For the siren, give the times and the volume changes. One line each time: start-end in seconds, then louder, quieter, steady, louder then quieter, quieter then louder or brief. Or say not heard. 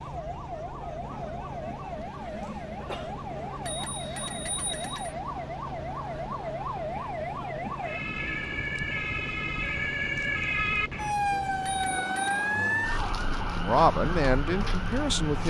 0.0-15.4 louder.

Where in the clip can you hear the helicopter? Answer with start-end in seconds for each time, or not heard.
0.0-15.3.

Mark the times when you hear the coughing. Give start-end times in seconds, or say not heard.
2.0-3.1.